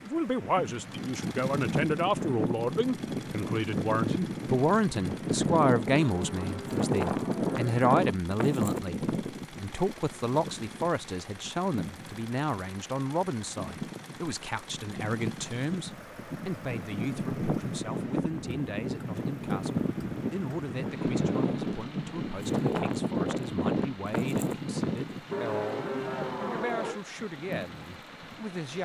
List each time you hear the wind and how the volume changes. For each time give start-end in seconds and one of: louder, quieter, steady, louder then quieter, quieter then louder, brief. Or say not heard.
0.0-28.6 quieter then louder.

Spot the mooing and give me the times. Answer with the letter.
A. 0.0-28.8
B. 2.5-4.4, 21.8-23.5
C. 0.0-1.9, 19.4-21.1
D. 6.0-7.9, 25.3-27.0
D.